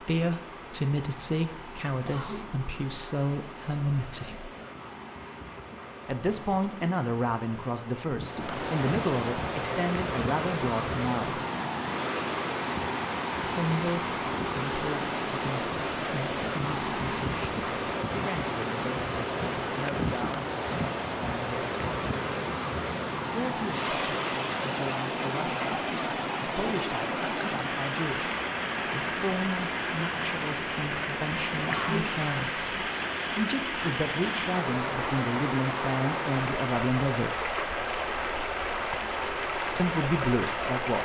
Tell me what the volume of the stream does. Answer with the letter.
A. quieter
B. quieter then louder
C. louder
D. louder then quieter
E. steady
C.